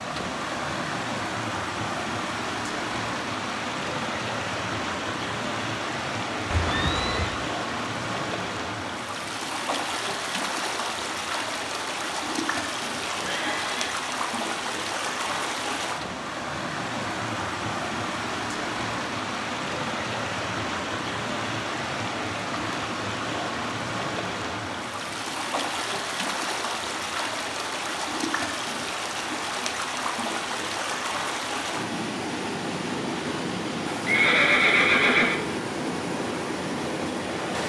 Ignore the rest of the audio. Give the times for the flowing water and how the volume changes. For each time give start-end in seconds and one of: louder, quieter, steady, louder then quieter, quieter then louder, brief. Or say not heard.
0.0-37.6 steady.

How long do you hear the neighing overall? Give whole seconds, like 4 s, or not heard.
3 s.